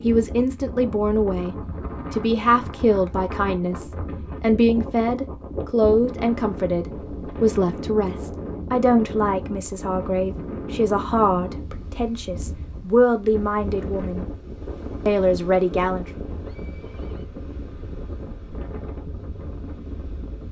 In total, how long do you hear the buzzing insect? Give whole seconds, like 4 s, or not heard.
not heard.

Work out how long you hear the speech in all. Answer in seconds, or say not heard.
15 s.